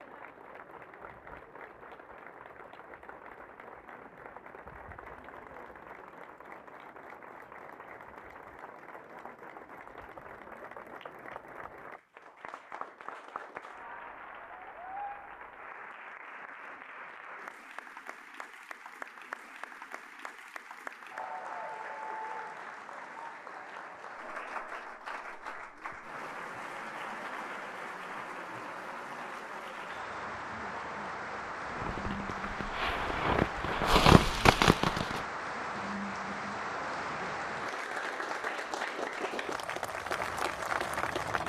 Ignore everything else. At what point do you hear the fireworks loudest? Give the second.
34 s.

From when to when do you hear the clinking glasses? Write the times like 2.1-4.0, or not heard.
not heard.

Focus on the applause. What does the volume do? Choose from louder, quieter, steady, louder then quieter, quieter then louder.
louder.